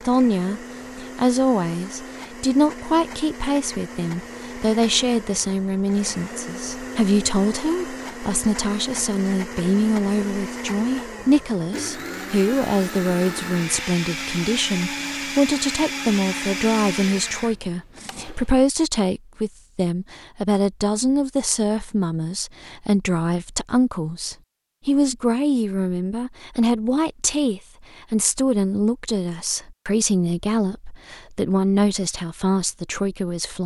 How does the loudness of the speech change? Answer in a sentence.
The volume of the speech stays about the same.